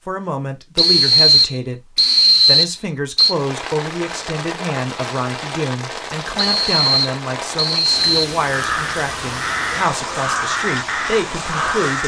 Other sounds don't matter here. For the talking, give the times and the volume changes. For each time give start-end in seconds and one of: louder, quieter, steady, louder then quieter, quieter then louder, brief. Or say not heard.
0.1-12.0 steady.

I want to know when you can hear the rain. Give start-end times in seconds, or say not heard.
3.2-12.0.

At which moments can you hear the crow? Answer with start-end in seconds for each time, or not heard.
8.5-12.0.